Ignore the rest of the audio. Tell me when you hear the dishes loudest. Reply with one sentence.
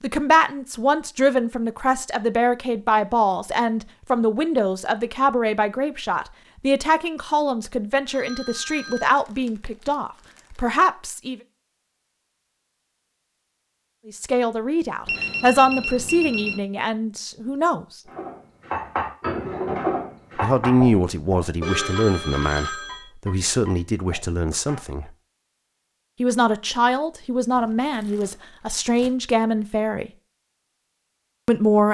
The volume of the dishes peaks at 20 seconds.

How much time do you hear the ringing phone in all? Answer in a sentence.
You can hear the ringing phone for 4 seconds altogether.